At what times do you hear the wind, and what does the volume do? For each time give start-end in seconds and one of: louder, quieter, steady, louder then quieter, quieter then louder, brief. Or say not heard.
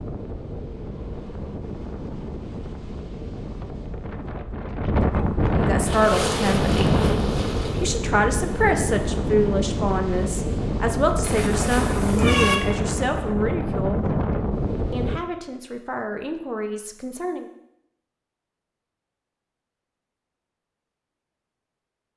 0.0-15.2 louder.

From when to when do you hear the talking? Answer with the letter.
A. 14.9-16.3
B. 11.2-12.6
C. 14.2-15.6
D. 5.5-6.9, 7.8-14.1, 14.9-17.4
D.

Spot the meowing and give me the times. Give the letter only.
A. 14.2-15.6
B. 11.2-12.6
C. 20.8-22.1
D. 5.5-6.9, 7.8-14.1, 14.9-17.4
B.